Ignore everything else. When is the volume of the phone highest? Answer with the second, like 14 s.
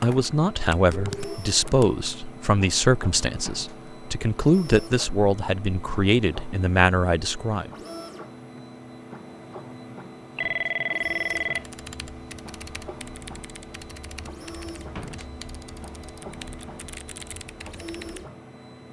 11 s.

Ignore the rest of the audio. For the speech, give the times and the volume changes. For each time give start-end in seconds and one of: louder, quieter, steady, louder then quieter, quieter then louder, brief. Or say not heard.
0.0-7.7 steady.